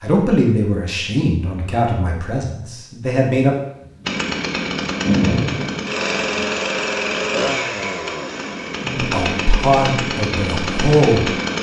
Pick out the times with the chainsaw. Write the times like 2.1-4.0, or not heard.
4.0-11.5.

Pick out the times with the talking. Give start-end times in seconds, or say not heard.
0.0-3.5, 8.8-11.3.